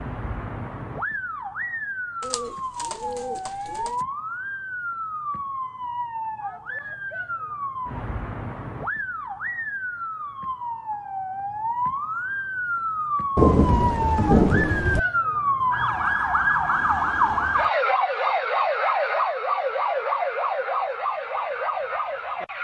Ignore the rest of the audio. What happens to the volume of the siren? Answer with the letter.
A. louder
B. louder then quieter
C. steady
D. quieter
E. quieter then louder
A.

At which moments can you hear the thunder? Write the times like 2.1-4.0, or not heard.
13.3-15.0.